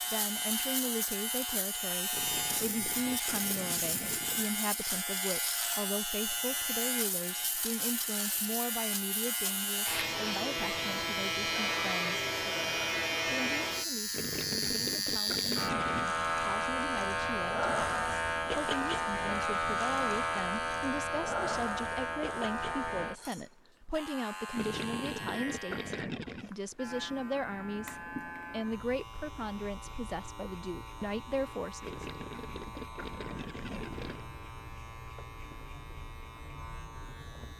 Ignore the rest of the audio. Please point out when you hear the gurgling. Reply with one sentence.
The gurgling can be heard from 2.1 to 4.5 s, from 14.1 to 16.1 s, from 24.6 to 26.5 s and from 31.8 to 34.2 s.